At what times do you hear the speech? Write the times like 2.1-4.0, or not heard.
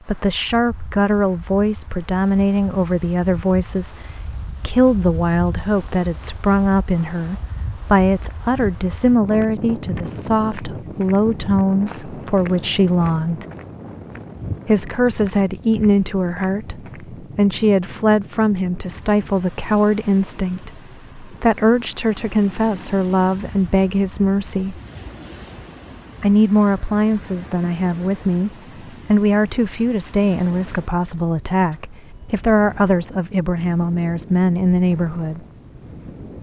0.1-4.0, 4.6-13.4, 14.7-24.8, 26.2-35.4.